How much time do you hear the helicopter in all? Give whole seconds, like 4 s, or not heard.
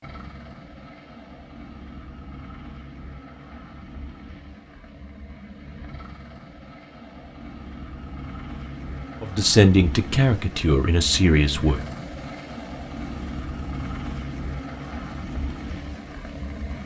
17 s.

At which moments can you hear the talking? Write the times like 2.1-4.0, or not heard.
9.2-11.8.